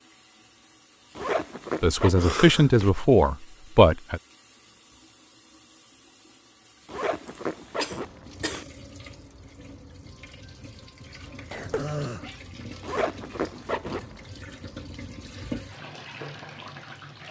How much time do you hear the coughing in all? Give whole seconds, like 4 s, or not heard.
3 s.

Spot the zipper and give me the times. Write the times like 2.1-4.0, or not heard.
1.1-2.9, 6.8-8.7, 12.8-14.2.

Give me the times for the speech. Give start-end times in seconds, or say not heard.
1.8-4.2.